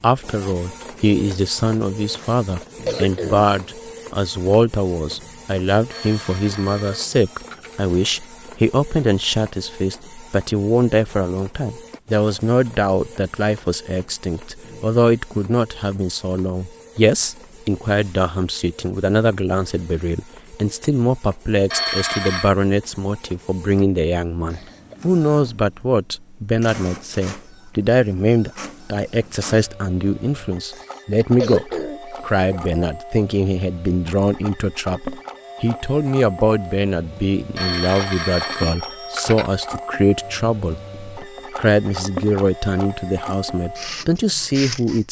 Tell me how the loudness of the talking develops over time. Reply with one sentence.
The volume of the talking stays about the same.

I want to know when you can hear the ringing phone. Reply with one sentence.
The ringing phone can be heard from 5.9 to 7.8 s, from 21.7 to 22.5 s and from 37.5 to 39.5 s.